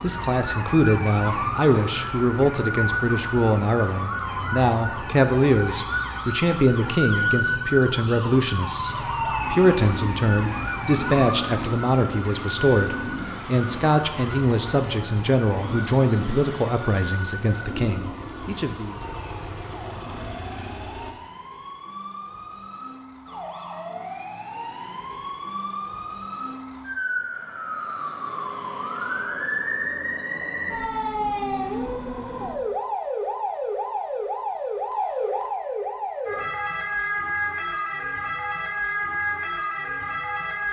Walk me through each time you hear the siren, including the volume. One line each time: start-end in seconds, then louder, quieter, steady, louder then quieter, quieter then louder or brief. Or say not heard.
0.0-40.6 quieter then louder.